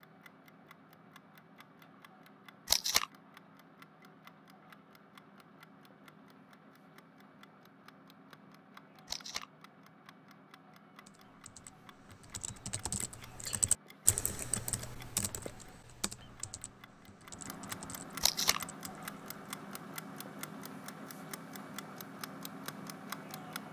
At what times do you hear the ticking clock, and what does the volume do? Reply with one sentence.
You can hear the ticking clock from 0.0 to 23.6 s, getting louder.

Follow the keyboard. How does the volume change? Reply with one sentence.
The loudness of the keyboard goes up, then down.